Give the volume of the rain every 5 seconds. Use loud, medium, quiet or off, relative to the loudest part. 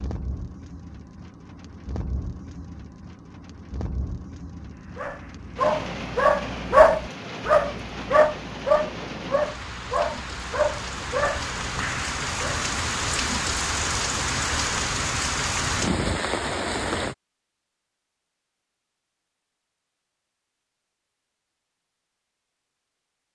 quiet, medium, loud, loud, off.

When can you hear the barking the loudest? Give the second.
7 s.